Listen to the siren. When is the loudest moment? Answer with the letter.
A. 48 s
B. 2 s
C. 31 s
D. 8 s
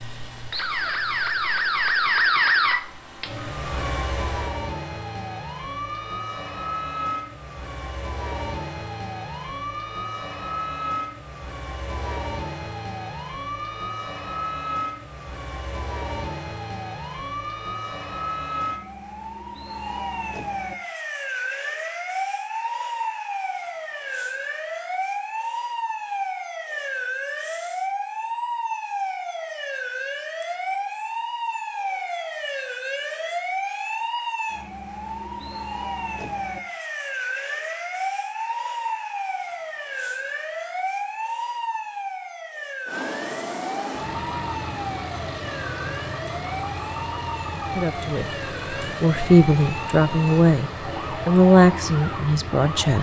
B.